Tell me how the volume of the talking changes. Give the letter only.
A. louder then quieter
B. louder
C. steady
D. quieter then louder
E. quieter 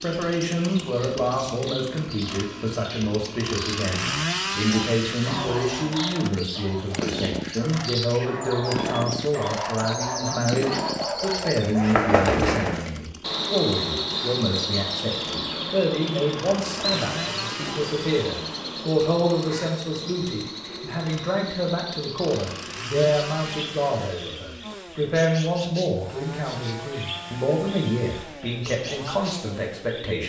C.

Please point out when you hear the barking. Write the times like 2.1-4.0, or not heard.
5.1-13.0.